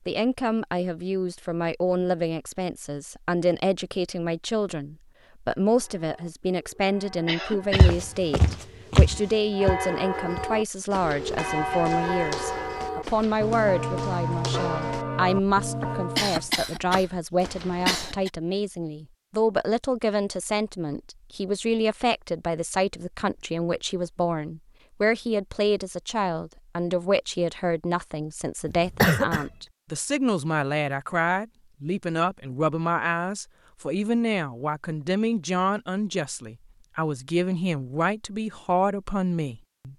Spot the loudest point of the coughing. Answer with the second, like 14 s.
29 s.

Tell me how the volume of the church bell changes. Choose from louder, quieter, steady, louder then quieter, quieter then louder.
louder.